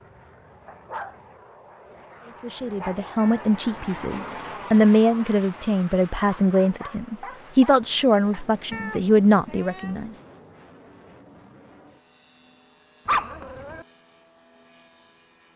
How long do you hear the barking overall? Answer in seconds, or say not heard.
5 s.